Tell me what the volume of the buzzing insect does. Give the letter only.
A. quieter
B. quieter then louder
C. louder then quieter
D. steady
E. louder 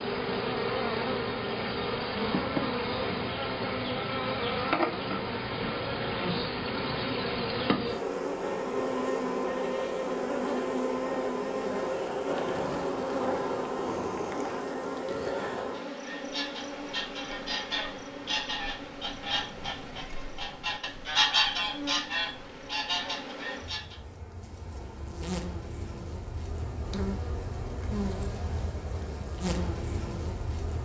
B.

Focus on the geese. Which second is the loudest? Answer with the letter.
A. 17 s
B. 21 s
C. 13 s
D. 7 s
B.